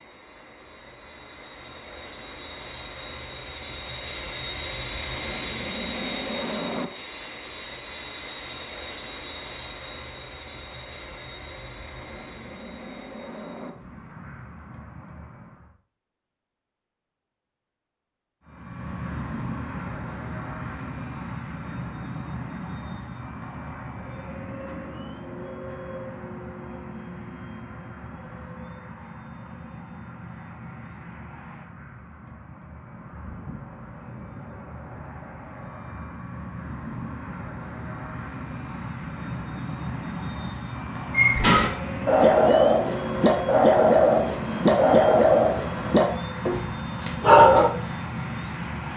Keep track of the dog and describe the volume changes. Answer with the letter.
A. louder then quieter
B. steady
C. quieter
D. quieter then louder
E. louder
C.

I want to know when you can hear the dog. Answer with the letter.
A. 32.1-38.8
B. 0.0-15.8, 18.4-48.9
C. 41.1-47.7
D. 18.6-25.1
C.